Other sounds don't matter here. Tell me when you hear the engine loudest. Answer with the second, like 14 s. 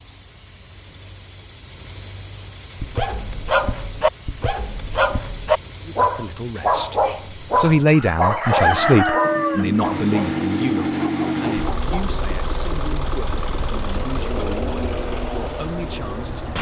11 s.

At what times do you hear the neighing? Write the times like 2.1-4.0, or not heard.
not heard.